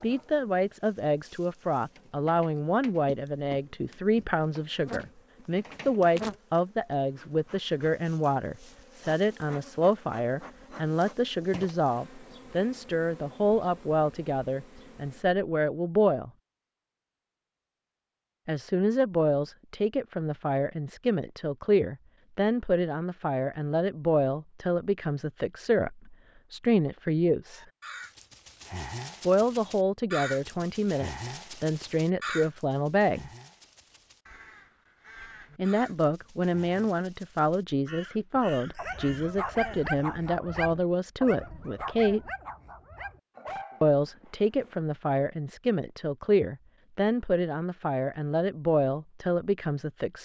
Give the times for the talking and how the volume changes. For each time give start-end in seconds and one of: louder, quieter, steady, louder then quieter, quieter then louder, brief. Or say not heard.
0.0-16.3 steady
18.4-27.6 steady
29.2-33.3 quieter then louder
35.5-42.2 steady
43.8-50.2 steady.